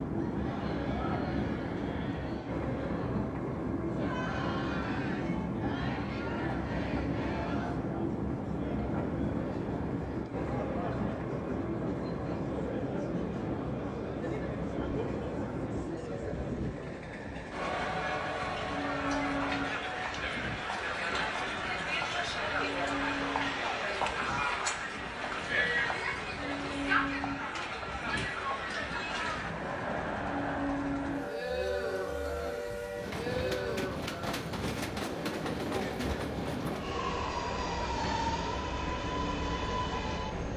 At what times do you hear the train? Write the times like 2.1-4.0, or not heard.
0.0-40.5.